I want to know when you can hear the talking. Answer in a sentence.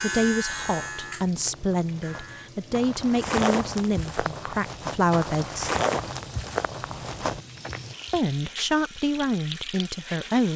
You can hear the talking from 0.0 to 5.7 s and from 8.1 to 10.5 s.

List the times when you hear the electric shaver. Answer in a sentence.
You can hear the electric shaver from 0.0 to 2.5 s.